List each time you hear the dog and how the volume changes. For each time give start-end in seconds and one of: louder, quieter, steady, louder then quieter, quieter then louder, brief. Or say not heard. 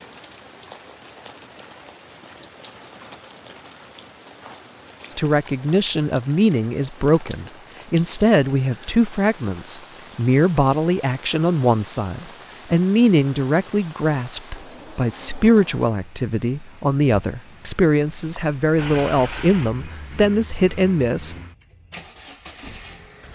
not heard.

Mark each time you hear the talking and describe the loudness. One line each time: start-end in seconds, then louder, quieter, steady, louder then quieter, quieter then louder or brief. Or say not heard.
5.1-21.4 steady.